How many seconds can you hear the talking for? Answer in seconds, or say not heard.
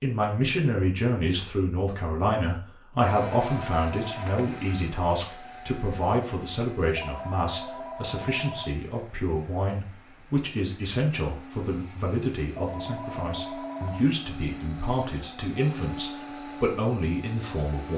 18 s.